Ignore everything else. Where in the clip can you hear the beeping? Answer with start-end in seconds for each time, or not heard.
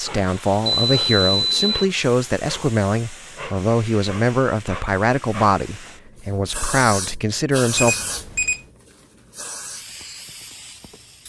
0.8-1.9, 7.8-8.7.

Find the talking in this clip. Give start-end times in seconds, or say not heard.
0.0-8.0.